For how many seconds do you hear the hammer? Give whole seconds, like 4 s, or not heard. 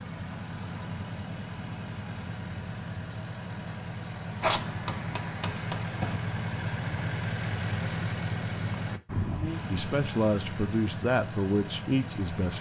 2 s.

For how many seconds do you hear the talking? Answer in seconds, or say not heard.
3 s.